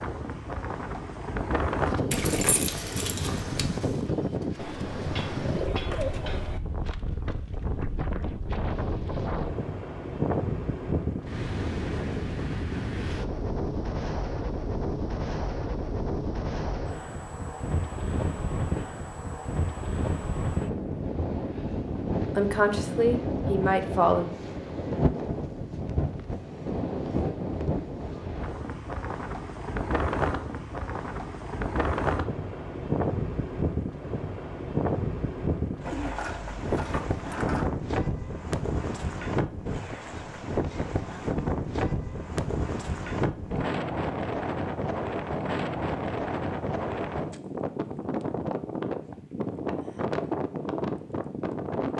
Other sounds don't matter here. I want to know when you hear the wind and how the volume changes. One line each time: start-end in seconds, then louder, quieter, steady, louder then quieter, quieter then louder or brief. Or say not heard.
0.0-51.9 steady.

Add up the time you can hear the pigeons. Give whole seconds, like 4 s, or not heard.
4 s.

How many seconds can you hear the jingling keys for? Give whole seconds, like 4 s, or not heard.
2 s.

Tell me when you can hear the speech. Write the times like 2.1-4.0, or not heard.
22.4-24.2.